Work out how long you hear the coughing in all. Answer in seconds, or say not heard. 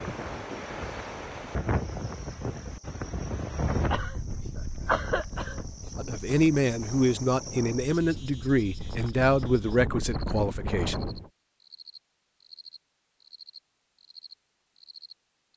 2 s.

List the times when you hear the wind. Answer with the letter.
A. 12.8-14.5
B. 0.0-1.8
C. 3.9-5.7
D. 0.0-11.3
D.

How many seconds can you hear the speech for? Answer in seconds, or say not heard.
5 s.